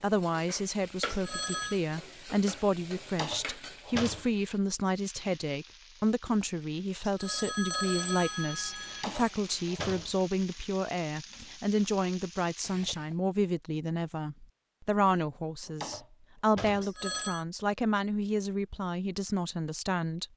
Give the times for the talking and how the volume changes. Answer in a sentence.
You can hear the talking from 0.0 to 20.2 s, at a steady volume.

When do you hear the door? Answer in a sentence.
You can hear the door from 3.0 to 4.3 s, from 8.8 to 10.2 s and from 15.7 to 16.9 s.